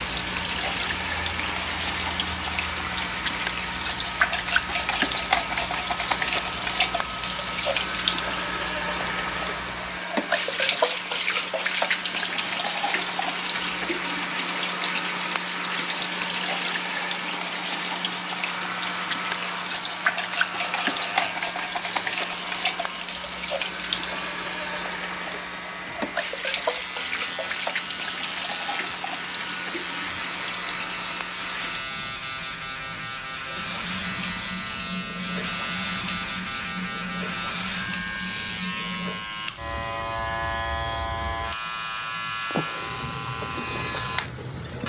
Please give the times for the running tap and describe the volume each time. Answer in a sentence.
The running tap can be heard from 0.0 to 44.8 s, getting quieter.